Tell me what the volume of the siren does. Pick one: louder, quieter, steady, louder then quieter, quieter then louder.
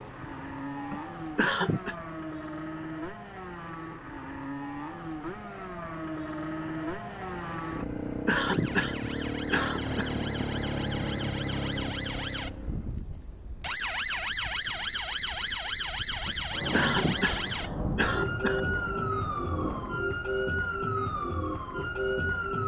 louder.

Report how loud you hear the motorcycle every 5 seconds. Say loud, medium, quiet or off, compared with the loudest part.
medium, loud, loud, off, off.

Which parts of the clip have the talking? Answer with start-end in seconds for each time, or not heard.
not heard.